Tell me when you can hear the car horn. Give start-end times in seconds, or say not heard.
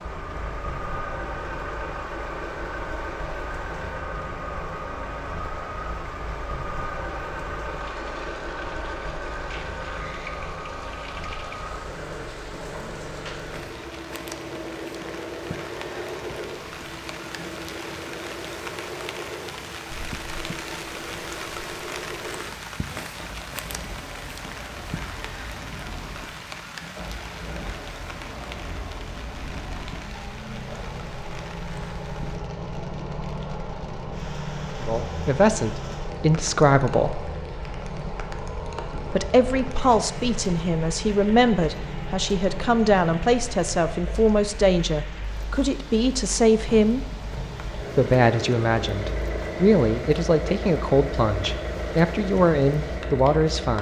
not heard.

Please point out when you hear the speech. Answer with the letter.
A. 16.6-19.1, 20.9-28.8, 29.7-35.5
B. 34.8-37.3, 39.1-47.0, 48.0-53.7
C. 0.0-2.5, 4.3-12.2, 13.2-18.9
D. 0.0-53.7
B.